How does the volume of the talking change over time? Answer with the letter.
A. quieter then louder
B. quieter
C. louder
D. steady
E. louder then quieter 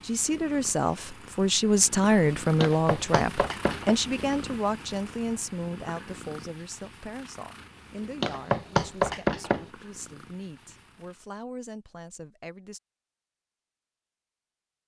B.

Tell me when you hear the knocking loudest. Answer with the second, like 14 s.
9 s.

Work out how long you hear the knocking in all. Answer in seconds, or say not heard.
3 s.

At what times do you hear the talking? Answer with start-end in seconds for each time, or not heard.
0.0-12.8.